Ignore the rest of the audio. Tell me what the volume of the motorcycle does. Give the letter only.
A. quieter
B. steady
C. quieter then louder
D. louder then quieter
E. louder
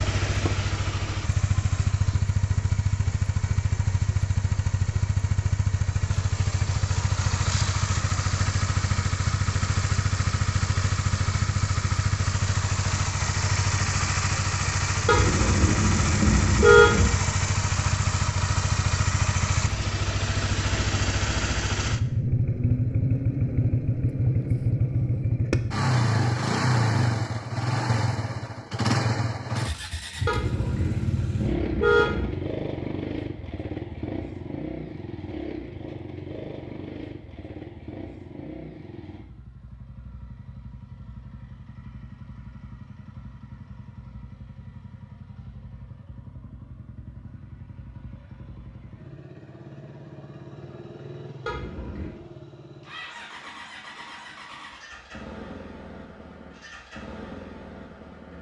A.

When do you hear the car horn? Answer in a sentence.
You can hear the car horn from 15.1 to 17.1 s, from 30.2 to 32.3 s and from 51.5 to 52.2 s.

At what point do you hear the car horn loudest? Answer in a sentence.
The loudest moment of the car horn is at 17 seconds.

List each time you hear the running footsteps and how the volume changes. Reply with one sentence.
You can't hear the running footsteps here.